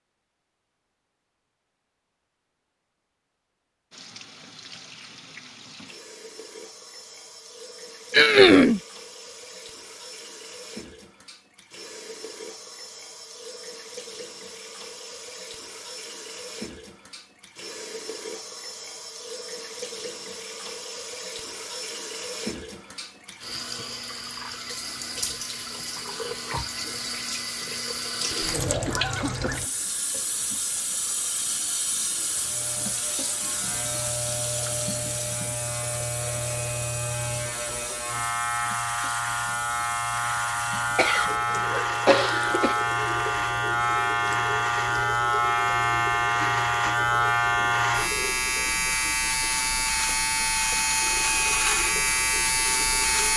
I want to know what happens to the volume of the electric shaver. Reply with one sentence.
The loudness of the electric shaver goes up.